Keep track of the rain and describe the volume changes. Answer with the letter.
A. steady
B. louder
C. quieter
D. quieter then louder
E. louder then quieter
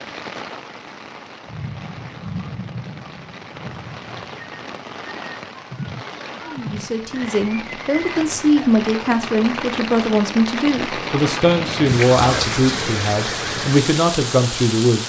B.